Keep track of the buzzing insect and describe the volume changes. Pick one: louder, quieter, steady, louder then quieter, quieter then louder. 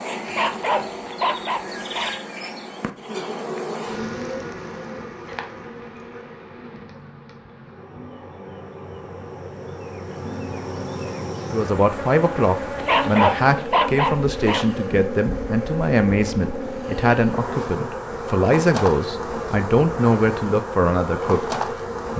quieter then louder.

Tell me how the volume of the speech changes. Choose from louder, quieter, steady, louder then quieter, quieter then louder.
steady.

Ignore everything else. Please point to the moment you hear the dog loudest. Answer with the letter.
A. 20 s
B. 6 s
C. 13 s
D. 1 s
C.